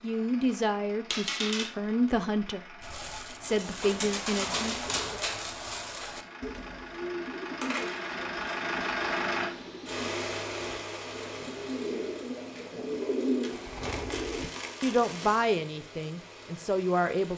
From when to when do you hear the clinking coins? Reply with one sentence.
You can hear the clinking coins from 1.1 to 1.7 s, from 7.6 to 8.2 s and from 13.0 to 15.4 s.